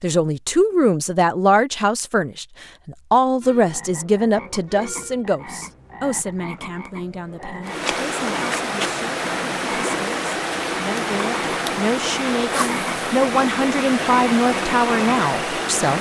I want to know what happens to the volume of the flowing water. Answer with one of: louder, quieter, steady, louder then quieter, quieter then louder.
steady.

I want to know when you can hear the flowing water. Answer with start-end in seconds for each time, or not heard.
7.6-15.9.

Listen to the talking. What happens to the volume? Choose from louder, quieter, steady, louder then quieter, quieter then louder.
quieter then louder.